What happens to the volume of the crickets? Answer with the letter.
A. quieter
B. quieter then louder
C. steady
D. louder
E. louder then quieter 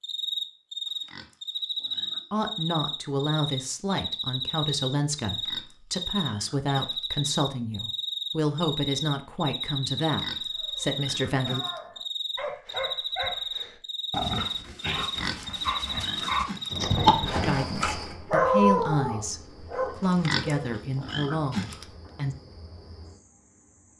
A.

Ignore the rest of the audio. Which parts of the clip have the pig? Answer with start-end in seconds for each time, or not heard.
0.8-2.5, 5.2-7.0, 10.0-11.8, 14.9-16.8, 20.0-21.9.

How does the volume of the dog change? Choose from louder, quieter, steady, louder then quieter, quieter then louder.
louder.